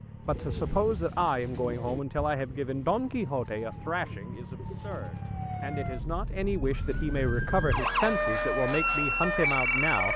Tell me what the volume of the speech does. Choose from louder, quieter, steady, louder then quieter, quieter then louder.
quieter then louder.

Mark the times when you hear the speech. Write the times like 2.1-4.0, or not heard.
0.2-10.1.